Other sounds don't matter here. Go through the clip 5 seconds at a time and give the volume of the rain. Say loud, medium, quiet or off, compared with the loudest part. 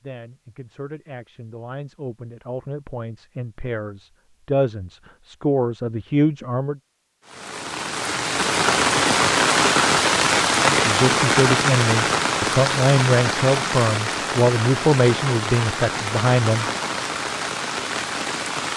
off, loud, loud, medium.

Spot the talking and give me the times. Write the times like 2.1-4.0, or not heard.
0.0-6.8, 10.7-16.7.